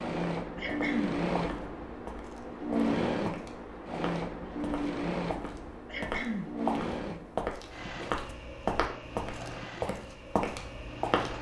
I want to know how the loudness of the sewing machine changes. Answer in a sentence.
The loudness of the sewing machine goes down.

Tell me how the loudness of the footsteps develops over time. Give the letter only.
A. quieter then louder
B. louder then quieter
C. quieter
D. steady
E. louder
E.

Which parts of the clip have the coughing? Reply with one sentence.
The coughing can be heard from 0.6 to 1.2 s and from 5.8 to 6.5 s.